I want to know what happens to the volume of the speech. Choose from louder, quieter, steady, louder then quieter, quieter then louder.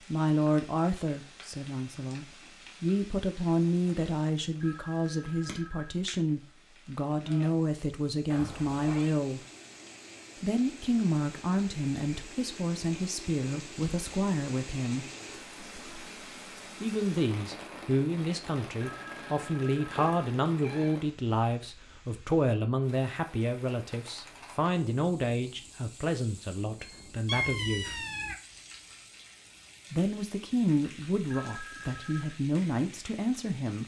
steady.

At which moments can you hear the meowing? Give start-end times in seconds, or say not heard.
8.2-9.2, 19.9-20.9, 26.8-28.4.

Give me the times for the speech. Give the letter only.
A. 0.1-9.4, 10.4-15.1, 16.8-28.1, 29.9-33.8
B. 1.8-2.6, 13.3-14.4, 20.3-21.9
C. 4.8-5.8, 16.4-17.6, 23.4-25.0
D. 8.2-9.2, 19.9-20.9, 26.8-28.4
A.